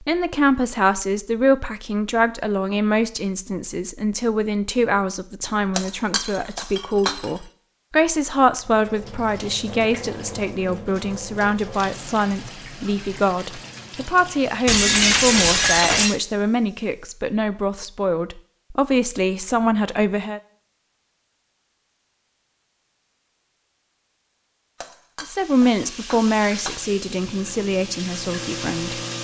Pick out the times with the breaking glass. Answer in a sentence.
The breaking glass can be heard from 5.8 to 7.3 s, from 14.7 to 16.1 s and from 24.8 to 26.8 s.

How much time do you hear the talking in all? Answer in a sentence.
The talking can be heard for 24 seconds in total.